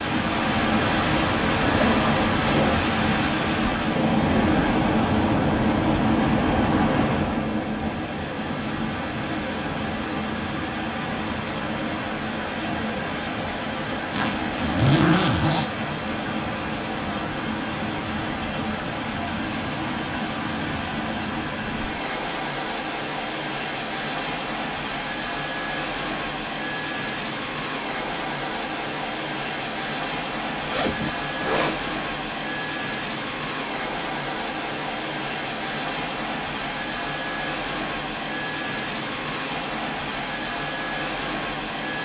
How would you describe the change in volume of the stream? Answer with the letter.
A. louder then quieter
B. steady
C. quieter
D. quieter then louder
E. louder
C.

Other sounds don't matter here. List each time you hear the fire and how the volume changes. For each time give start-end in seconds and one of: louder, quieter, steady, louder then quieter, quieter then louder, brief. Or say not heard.
not heard.